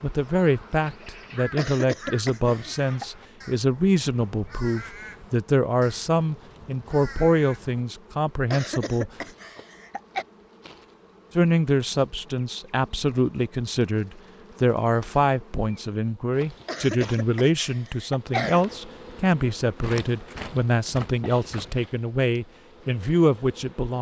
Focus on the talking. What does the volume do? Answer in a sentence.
The volume of the talking stays about the same.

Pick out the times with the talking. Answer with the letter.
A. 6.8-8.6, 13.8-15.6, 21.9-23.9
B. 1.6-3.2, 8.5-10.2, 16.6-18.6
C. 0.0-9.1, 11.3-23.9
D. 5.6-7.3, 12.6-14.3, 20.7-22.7
C.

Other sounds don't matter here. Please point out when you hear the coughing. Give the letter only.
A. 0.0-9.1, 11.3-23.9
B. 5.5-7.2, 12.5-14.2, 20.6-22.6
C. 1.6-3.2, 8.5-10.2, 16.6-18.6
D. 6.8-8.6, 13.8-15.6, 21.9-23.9
C.